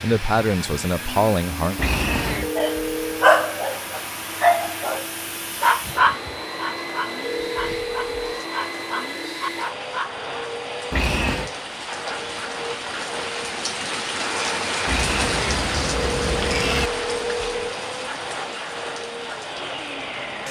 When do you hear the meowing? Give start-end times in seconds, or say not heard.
1.8-2.5, 10.9-11.5, 14.8-16.9.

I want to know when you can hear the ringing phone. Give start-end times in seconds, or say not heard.
2.4-3.1, 7.2-8.4, 15.9-17.8.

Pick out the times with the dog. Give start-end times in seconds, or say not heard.
2.5-10.2.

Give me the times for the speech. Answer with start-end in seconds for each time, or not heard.
0.0-1.8.